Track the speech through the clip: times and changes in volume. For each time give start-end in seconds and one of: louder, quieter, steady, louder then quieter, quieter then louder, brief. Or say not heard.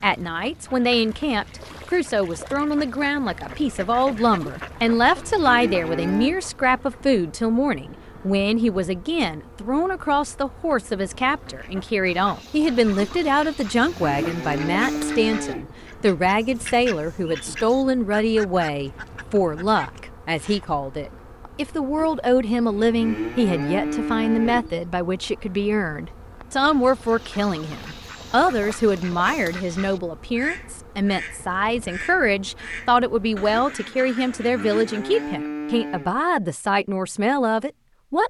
0.0-38.2 steady.